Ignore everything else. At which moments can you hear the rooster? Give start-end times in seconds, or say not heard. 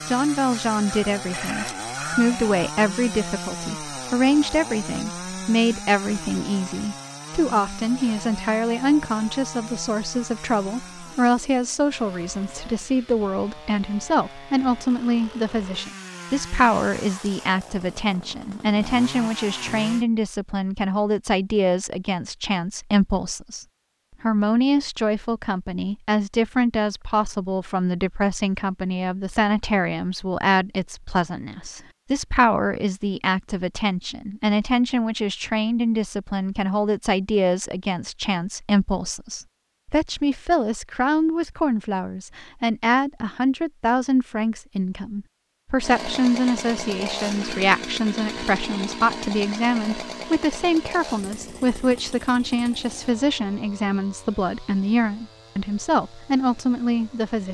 0.9-2.4.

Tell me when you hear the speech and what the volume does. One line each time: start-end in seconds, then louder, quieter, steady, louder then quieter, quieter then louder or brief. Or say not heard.
0.1-57.5 steady.